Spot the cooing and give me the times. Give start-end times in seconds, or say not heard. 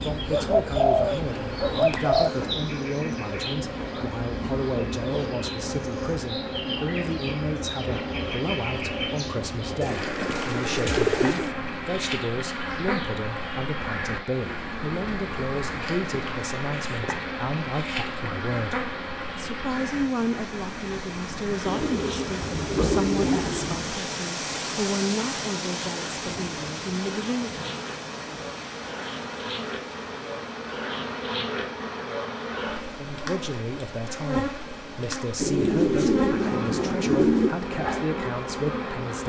0.0-2.3, 9.8-11.5, 21.6-23.9, 35.4-37.5.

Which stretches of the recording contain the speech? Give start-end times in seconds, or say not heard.
0.0-27.6, 32.9-39.2.